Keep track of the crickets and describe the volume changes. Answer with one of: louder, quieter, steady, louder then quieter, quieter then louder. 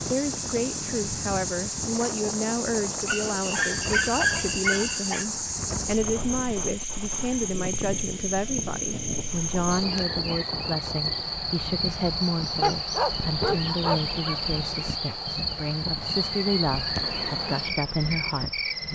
steady.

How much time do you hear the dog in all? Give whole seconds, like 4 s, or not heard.
4 s.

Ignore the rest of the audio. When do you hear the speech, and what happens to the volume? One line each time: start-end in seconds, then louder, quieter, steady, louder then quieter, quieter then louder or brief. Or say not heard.
0.1-18.7 steady.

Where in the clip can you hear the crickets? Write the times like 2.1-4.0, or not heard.
0.0-18.8.